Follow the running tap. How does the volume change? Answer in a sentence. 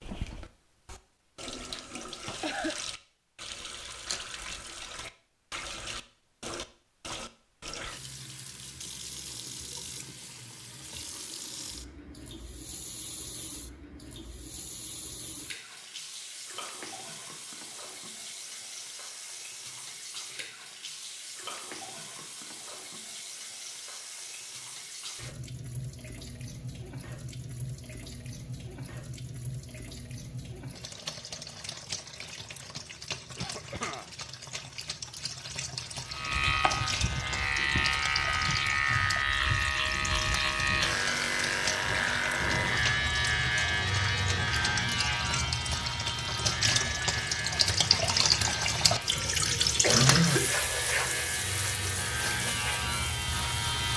The volume of the running tap goes up.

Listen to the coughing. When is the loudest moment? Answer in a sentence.
The loudest moment of the coughing is at 50 seconds.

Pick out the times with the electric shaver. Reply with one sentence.
You can hear the electric shaver from 36.0 to 53.9 s.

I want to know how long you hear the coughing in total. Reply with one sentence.
The coughing can be heard for 2 seconds in total.